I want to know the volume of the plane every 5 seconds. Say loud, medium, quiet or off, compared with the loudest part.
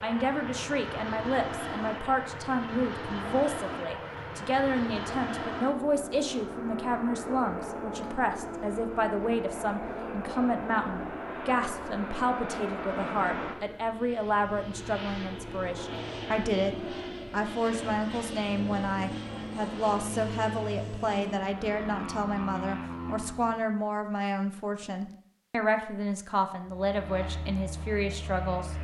loud, loud, loud, loud, loud, medium.